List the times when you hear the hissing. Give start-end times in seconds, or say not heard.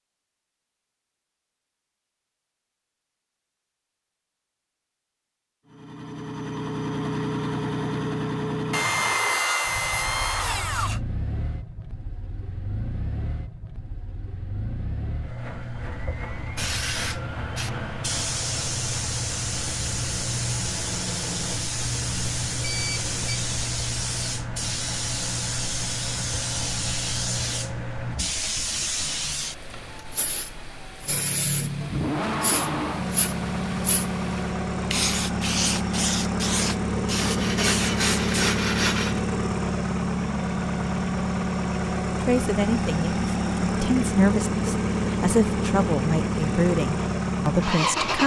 16.6-38.5.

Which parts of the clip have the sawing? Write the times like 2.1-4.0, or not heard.
8.7-11.0, 37.1-39.2.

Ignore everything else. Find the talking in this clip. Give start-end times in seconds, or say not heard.
42.2-48.2.